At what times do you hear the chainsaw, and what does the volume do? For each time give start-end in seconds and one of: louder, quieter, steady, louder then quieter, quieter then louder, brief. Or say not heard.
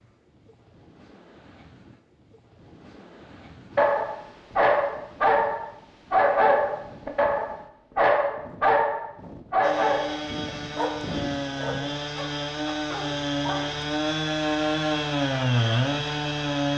9.6-16.7 louder.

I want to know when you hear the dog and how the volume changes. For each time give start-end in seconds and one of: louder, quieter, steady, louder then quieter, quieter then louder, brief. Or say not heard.
3.8-13.9 quieter.